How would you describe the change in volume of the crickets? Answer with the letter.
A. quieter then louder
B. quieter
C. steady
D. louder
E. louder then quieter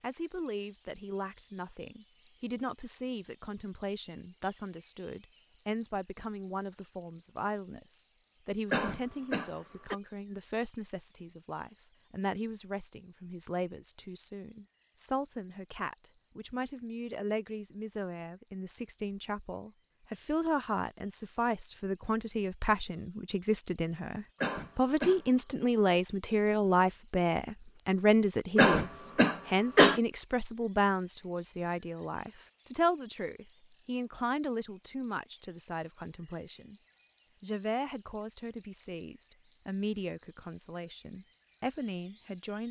A.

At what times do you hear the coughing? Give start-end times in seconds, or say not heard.
8.7-9.9, 24.4-25.2, 28.6-30.0.